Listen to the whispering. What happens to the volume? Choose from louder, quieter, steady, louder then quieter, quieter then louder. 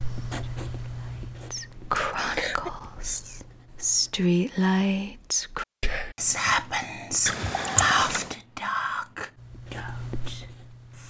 louder then quieter.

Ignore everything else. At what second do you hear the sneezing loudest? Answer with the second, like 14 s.
8 s.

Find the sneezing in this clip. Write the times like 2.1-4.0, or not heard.
2.0-2.7, 7.2-8.3.